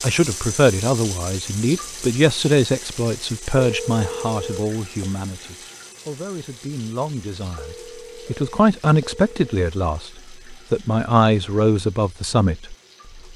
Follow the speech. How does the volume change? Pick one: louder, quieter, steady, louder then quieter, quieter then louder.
quieter then louder.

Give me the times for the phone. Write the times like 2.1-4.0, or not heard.
3.5-5.1, 7.5-9.6.